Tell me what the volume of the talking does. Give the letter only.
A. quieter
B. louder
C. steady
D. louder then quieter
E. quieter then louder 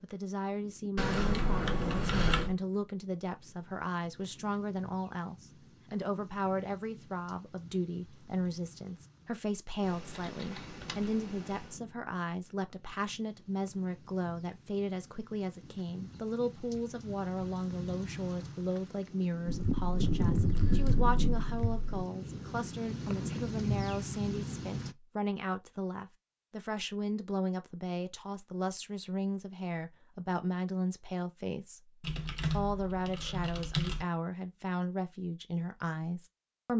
C.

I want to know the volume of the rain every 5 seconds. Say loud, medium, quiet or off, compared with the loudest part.
quiet, quiet, quiet, medium, loud, off, off, off.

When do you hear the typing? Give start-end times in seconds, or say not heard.
0.9-2.5, 9.8-11.8, 19.4-22.1, 32.0-34.0.